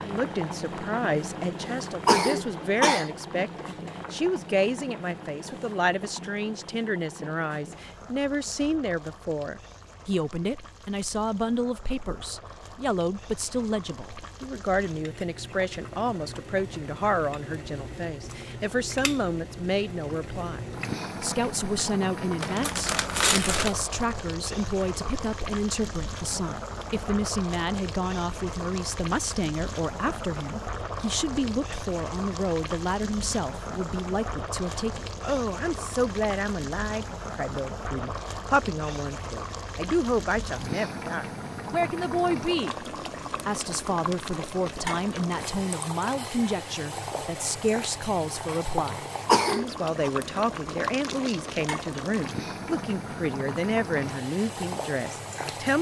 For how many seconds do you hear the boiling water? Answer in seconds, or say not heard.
56 s.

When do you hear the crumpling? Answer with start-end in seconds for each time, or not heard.
22.4-23.8, 50.6-51.8.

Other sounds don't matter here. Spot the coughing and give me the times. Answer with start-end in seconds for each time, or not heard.
2.0-3.1, 49.2-50.1.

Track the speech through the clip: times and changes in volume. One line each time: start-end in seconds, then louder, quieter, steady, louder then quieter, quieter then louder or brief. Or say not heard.
0.0-20.6 steady
21.2-42.9 steady
43.5-55.7 steady.